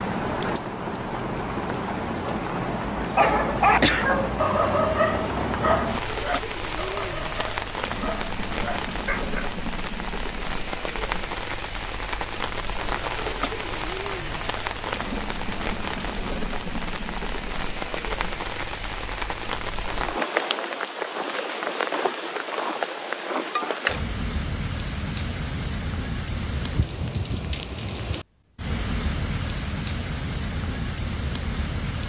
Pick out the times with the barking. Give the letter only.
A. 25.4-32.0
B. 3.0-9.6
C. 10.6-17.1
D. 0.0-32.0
B.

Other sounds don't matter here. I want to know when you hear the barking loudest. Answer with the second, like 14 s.
4 s.